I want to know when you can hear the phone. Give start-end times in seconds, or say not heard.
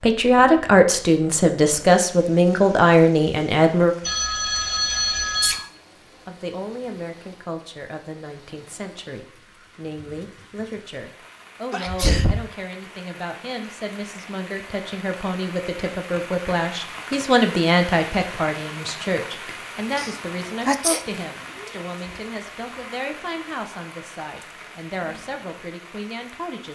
4.0-5.5.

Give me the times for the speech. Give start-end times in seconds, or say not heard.
0.0-4.0, 6.2-26.6.